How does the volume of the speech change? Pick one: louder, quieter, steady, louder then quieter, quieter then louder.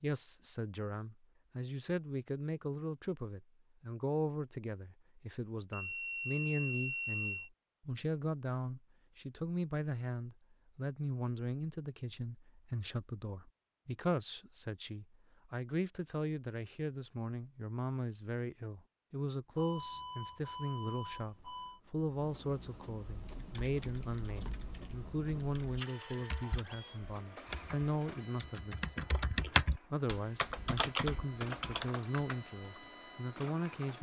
steady.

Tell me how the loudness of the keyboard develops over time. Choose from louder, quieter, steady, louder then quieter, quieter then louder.
louder then quieter.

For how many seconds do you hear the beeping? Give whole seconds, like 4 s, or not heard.
4 s.